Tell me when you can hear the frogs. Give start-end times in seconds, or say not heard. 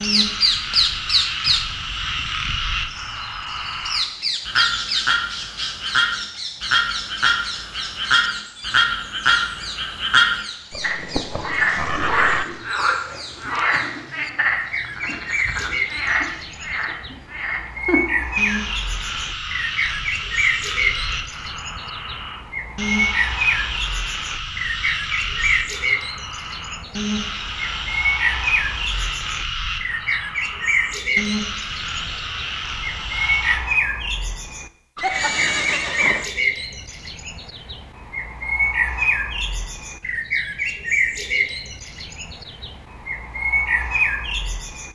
0.0-33.6.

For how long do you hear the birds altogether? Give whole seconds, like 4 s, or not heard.
45 s.